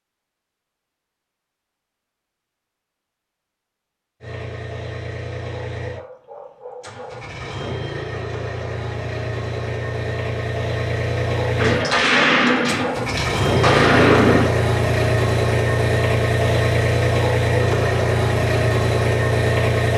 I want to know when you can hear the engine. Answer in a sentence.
The engine can be heard from 4.2 to 19.9 s.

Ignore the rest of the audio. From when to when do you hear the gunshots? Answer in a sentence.
The gunshots can be heard from 11.6 to 14.6 s.